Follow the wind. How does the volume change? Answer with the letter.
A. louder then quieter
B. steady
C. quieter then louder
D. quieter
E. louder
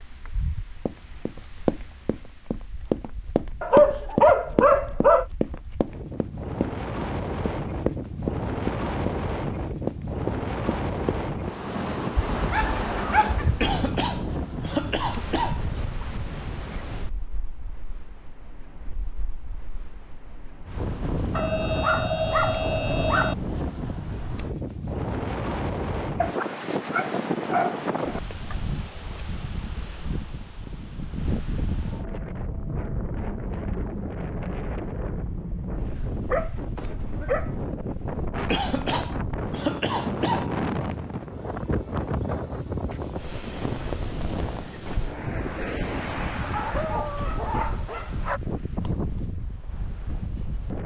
B.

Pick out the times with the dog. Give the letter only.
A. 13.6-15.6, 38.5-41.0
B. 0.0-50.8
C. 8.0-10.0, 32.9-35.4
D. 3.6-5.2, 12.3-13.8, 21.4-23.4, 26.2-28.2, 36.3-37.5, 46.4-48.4
D.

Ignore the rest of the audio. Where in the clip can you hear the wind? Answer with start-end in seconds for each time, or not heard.
0.0-50.8.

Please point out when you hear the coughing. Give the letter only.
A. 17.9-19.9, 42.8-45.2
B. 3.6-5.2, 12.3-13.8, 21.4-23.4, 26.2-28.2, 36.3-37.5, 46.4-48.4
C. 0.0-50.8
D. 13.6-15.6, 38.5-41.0
D.